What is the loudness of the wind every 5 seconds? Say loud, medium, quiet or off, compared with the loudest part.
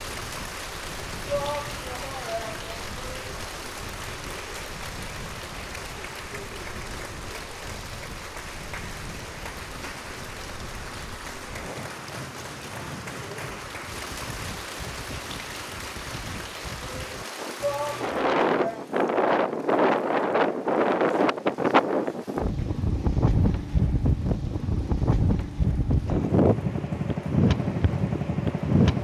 quiet, quiet, quiet, loud, loud, loud.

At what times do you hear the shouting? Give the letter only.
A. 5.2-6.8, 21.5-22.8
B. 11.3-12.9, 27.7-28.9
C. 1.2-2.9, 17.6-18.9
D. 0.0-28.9
C.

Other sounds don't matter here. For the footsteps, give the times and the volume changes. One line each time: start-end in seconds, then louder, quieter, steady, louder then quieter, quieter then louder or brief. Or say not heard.
not heard.